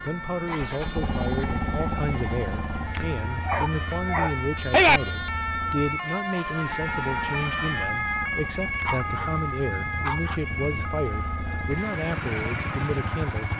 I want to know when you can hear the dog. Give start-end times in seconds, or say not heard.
3.5-5.0, 8.8-10.8.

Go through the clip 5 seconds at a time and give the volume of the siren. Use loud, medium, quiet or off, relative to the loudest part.
medium, loud, medium.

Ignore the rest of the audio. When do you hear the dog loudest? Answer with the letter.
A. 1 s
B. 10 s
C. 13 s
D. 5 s
D.